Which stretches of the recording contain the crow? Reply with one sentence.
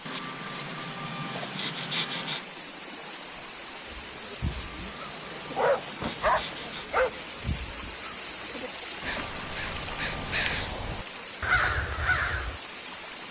The crow can be heard from 3.9 to 12.6 s.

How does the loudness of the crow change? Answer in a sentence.
The volume of the crow goes up.